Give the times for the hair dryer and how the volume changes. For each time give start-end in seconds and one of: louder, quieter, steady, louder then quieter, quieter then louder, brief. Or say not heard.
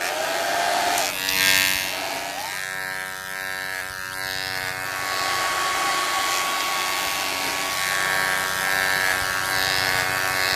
0.0-2.6 brief
4.8-10.5 quieter.